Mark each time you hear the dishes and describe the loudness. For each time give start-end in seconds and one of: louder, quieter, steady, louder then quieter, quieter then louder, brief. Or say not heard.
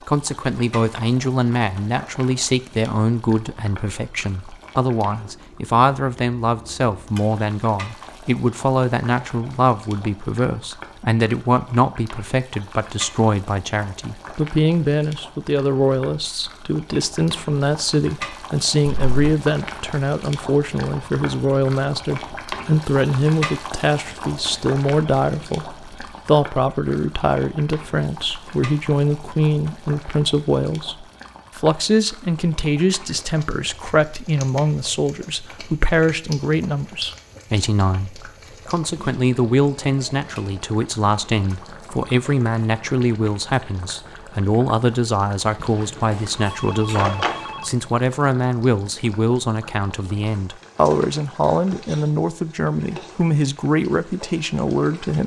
not heard.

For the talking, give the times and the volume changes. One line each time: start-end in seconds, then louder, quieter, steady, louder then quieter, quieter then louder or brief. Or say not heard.
0.1-55.2 steady.